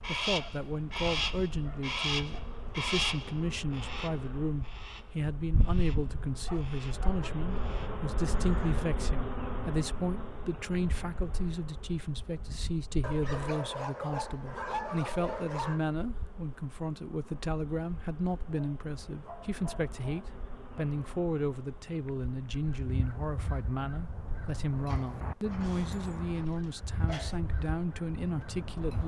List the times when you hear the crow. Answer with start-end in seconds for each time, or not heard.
0.0-8.8, 22.6-29.0.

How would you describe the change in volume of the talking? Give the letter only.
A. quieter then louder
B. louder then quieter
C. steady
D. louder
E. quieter
C.